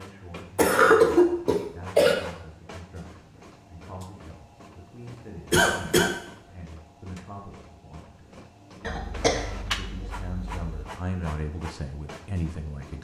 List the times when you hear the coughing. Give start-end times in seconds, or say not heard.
0.6-2.1, 5.5-6.1, 8.8-10.8.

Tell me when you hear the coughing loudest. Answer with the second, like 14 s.
1 s.